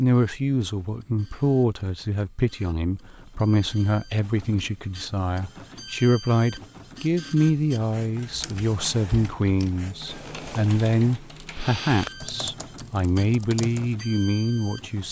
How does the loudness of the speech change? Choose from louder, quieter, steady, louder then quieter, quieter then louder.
steady.